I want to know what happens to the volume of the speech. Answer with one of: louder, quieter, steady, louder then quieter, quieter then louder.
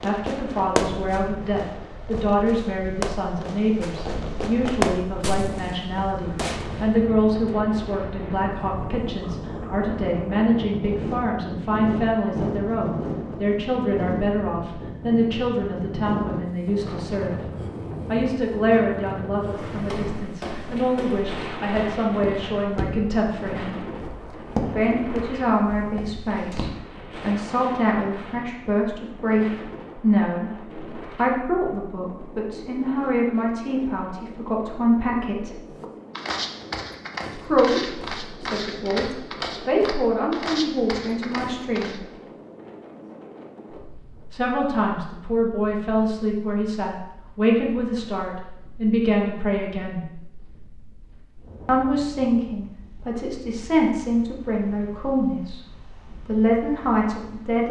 steady.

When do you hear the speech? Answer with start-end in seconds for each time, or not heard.
0.0-17.4, 18.1-23.8, 24.6-35.6, 37.4-42.0, 44.3-50.0, 51.6-57.6.